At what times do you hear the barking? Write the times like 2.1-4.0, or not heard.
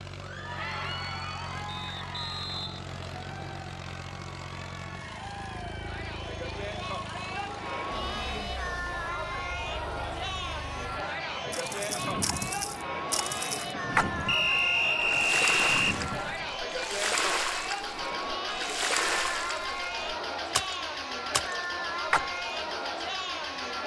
not heard.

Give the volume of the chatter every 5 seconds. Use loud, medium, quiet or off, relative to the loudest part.
medium, loud, loud, loud, loud.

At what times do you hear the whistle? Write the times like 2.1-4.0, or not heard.
1.6-3.6, 14.2-15.9.